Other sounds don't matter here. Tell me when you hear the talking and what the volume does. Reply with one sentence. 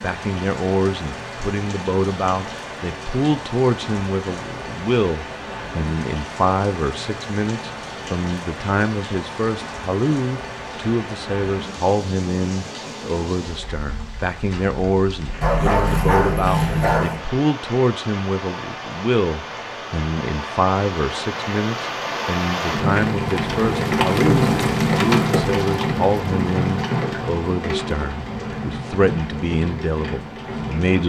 You can hear the talking from 0.0 to 31.0 s, at a steady volume.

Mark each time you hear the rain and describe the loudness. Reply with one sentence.
The rain can be heard from 0.0 to 31.0 s, getting louder.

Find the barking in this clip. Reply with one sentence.
You can hear the barking from 15.4 to 17.2 s.